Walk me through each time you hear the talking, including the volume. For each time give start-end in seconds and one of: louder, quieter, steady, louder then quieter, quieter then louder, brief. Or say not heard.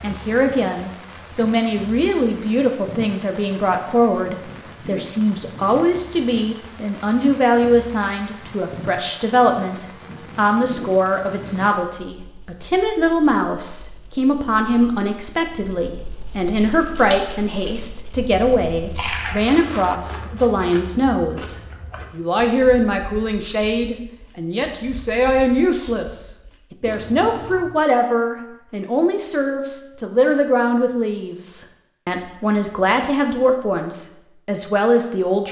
0.0-35.4 steady.